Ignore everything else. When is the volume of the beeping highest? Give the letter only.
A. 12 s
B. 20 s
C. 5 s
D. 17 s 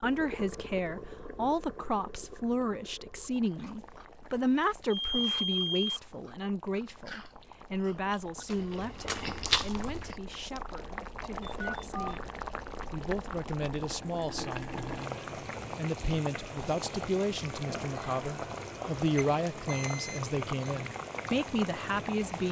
C.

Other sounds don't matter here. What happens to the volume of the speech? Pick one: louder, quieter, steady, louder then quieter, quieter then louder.
quieter then louder.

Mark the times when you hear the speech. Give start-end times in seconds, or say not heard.
0.0-22.4.